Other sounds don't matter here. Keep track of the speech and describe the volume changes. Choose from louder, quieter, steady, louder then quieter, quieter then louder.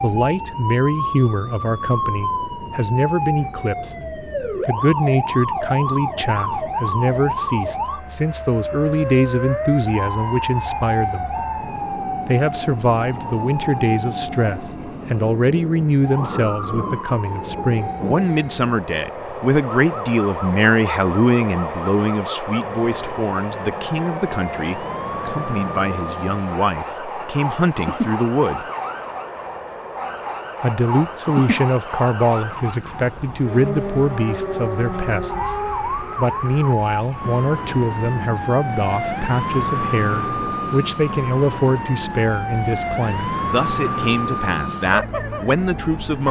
steady.